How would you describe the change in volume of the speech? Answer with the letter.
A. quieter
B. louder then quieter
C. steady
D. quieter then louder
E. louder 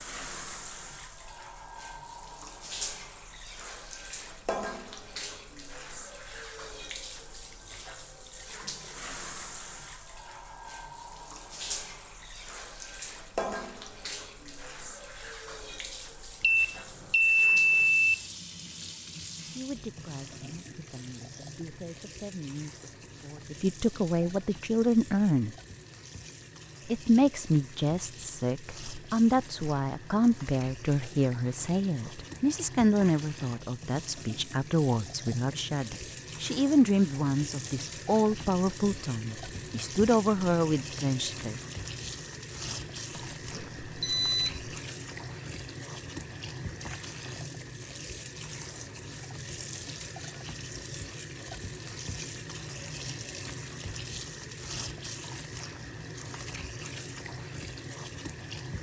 E.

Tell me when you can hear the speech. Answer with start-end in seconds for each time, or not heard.
19.4-25.6, 26.9-41.6.